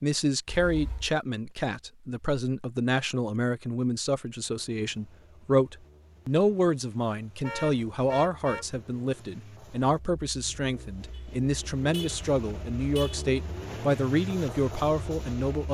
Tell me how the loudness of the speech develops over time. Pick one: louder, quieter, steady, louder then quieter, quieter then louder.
steady.